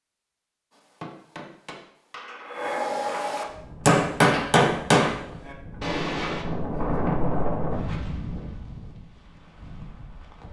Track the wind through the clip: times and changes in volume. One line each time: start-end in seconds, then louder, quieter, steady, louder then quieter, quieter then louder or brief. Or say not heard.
3.4-10.4 louder then quieter.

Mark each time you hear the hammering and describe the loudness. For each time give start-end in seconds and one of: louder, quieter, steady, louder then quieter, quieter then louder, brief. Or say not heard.
0.7-6.5 louder then quieter.